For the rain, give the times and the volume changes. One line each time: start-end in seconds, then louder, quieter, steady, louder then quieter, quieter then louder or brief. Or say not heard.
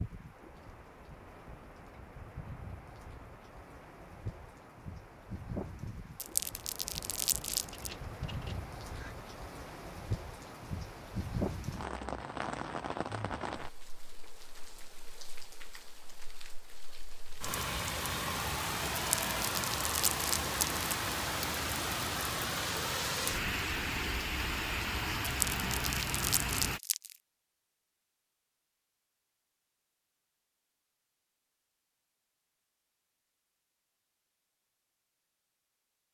0.0-26.8 louder.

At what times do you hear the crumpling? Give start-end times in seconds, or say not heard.
6.2-7.9, 18.9-20.9, 25.2-27.1.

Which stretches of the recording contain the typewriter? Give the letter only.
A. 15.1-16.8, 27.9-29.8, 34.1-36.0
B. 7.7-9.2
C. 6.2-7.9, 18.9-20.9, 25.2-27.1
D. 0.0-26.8
B.